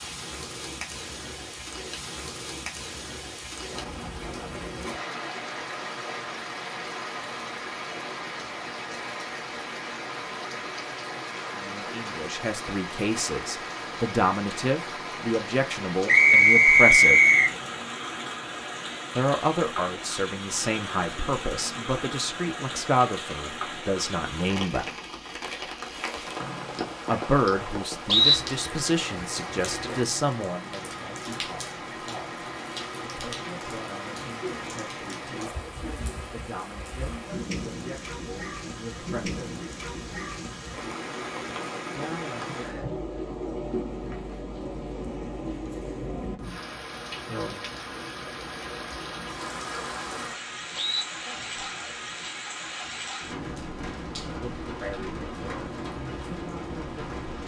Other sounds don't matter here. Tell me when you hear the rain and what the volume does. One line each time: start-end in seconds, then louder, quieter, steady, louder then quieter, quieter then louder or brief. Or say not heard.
0.0-57.4 steady.